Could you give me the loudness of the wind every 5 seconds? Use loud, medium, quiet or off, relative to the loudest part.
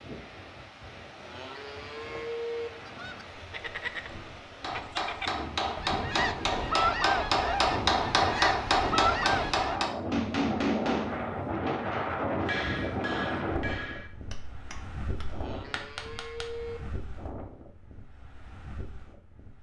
quiet, medium, loud, quiet.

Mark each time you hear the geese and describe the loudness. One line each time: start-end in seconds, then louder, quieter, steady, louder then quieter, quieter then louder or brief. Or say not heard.
2.7-9.8 louder.